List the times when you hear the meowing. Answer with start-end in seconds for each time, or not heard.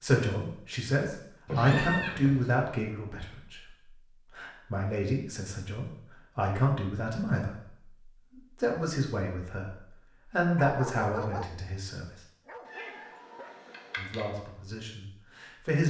1.4-2.5, 12.7-14.2.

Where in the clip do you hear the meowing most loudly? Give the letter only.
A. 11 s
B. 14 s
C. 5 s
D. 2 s
D.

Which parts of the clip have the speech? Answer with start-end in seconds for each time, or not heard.
0.0-3.8, 4.3-12.1, 13.9-15.8.